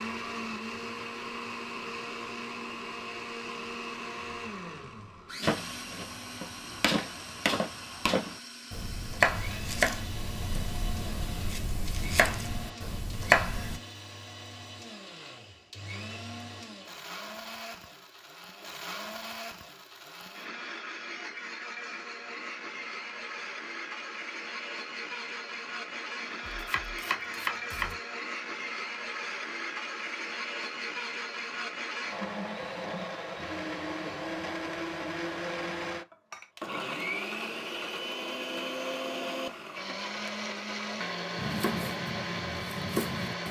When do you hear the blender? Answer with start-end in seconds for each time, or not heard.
0.0-43.4.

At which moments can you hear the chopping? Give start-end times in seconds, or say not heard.
5.4-13.8, 26.4-27.9, 41.4-43.4.